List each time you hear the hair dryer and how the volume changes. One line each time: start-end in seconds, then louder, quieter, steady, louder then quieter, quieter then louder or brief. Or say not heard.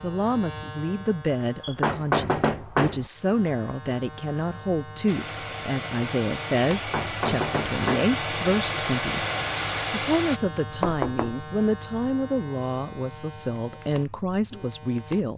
5.0-10.4 louder.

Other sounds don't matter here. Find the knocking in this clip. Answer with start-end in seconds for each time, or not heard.
1.6-3.0, 6.7-8.2, 10.8-11.3.